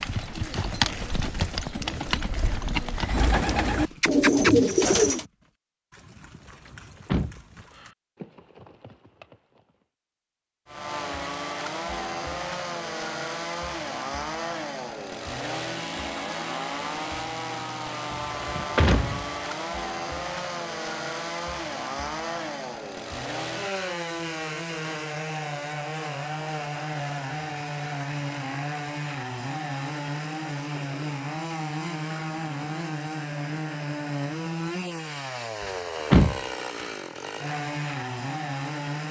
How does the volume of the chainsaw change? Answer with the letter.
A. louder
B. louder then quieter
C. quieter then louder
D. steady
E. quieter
D.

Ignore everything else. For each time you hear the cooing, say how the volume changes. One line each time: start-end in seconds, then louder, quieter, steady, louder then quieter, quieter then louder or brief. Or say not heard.
0.1-5.2 louder.